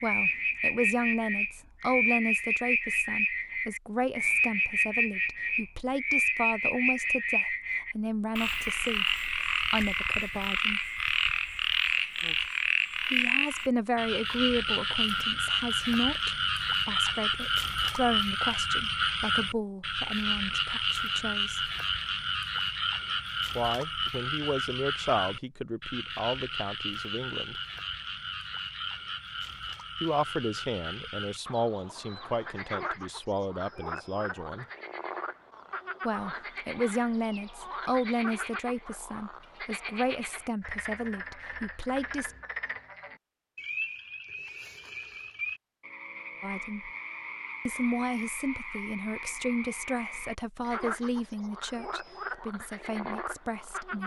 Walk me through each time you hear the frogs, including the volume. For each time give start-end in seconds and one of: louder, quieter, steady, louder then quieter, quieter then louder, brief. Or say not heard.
0.0-54.0 quieter.